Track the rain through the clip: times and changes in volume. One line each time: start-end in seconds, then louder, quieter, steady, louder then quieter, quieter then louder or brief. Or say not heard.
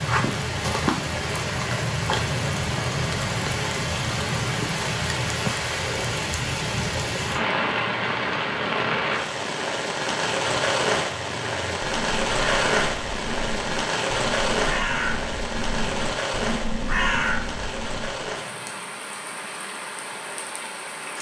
0.0-21.1 quieter.